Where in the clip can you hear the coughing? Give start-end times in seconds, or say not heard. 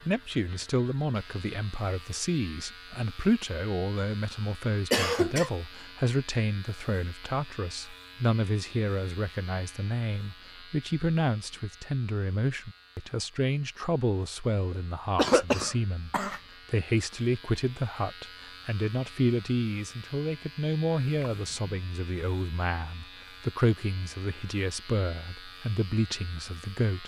4.9-5.5, 14.7-16.4, 21.3-21.8.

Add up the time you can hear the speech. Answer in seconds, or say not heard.
27 s.